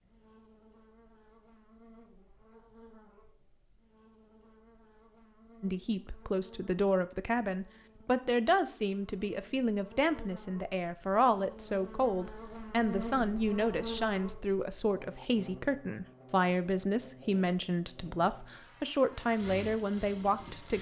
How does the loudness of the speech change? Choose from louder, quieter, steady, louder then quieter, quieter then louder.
steady.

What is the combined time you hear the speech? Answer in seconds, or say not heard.
15 s.